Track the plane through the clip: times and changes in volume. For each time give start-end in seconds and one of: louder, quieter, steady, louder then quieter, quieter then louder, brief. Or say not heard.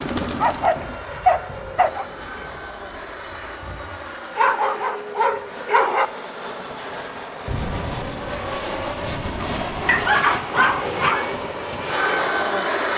0.0-12.9 louder.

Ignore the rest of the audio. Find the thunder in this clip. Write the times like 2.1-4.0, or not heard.
7.5-10.2.